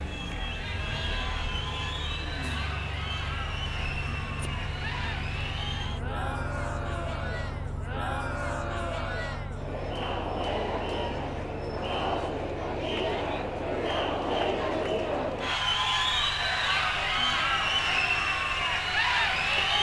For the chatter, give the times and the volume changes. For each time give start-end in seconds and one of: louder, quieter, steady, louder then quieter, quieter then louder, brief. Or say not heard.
0.0-19.7 louder.